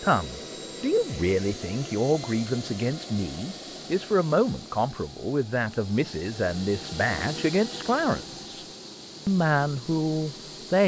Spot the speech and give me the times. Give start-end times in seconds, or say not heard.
0.0-8.7, 9.2-10.8.